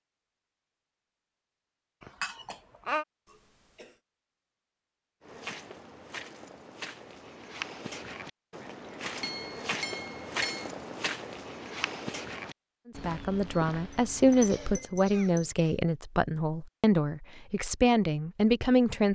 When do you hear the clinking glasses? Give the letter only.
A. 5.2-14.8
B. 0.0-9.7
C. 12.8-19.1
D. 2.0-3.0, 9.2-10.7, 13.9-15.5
D.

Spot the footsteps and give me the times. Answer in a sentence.
You can hear the footsteps from 5.2 to 14.8 s.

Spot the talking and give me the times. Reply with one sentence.
You can hear the talking from 12.8 to 19.1 s.